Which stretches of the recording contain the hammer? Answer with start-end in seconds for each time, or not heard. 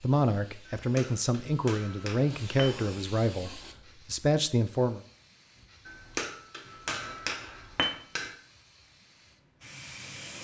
0.7-2.7, 5.8-8.3.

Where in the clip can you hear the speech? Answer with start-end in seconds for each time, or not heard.
0.0-5.0.